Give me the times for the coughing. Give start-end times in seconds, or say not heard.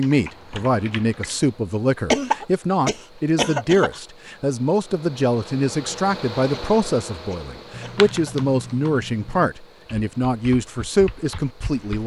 2.1-4.0, 6.5-8.4.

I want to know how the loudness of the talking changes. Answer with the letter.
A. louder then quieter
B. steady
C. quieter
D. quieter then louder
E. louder
B.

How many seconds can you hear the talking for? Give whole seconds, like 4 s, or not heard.
12 s.